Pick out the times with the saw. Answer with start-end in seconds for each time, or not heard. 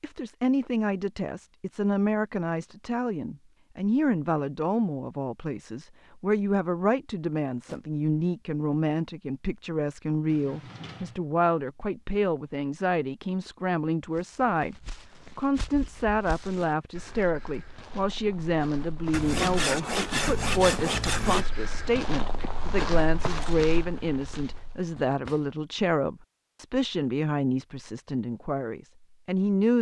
19.1-21.4.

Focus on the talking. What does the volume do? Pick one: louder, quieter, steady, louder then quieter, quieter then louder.
steady.